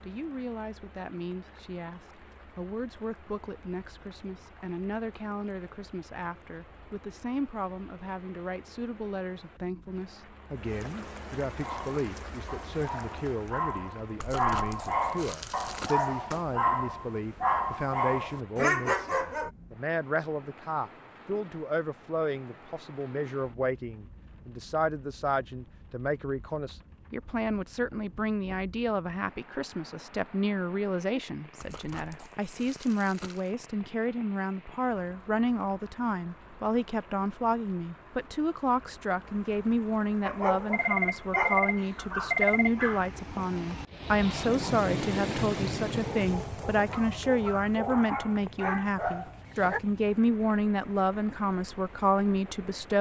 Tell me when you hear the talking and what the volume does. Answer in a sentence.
You can hear the talking from 0.0 to 52.9 s, getting louder.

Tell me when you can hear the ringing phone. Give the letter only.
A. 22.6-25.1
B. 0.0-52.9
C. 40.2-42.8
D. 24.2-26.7
C.